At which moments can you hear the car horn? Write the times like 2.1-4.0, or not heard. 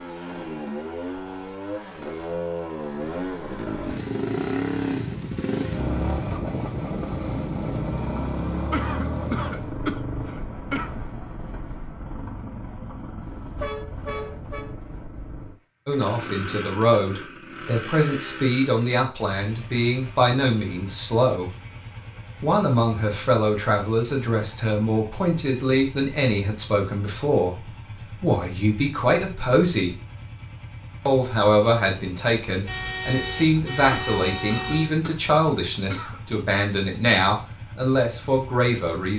13.6-14.7, 32.6-34.9.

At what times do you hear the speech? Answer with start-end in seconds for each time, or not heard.
15.8-21.5, 22.4-29.9, 31.1-39.1.